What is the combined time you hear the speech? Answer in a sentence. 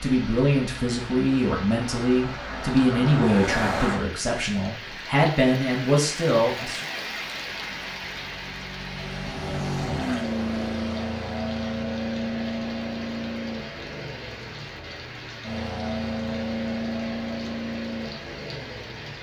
The speech can be heard for 7 seconds in total.